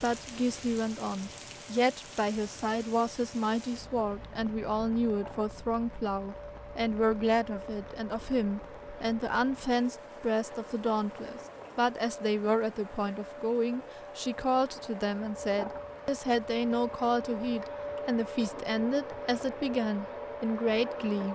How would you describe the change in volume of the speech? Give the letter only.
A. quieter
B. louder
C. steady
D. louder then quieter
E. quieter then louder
C.